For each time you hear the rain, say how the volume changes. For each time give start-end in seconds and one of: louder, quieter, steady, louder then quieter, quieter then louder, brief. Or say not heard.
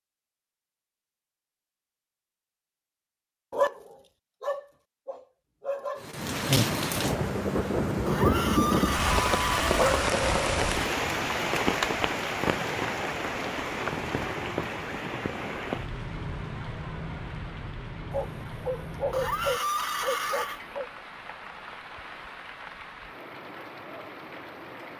6.0-24.9 quieter.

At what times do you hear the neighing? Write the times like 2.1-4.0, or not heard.
8.1-9.8, 19.1-20.6.